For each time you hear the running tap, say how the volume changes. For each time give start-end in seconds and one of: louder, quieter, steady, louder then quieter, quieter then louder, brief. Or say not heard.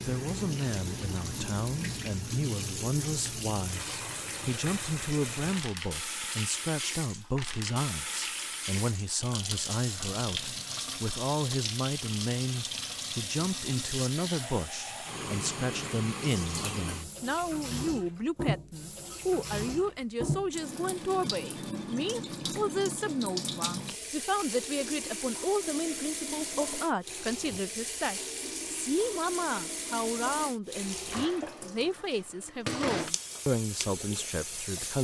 0.0-34.9 steady.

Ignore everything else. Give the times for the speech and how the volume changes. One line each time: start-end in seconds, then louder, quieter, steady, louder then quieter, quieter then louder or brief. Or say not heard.
0.0-34.9 steady.